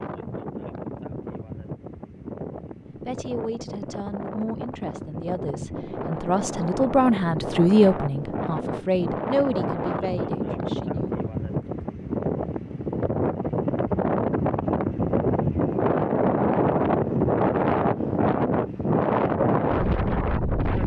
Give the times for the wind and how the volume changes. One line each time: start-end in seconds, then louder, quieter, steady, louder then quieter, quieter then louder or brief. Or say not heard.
0.0-20.8 louder.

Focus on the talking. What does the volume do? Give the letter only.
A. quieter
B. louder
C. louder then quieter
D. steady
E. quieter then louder
C.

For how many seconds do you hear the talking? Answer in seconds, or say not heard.
9 s.